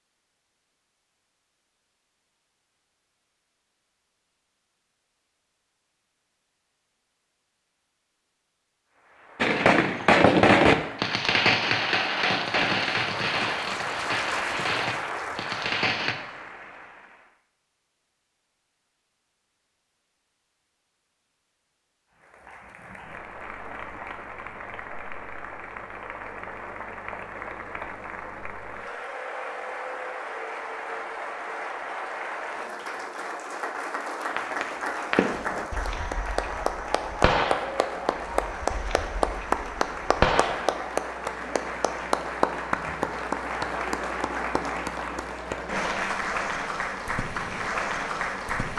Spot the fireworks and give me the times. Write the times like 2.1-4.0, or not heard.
9.3-16.1, 34.3-40.8.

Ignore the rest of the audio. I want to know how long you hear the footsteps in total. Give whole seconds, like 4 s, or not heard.
not heard.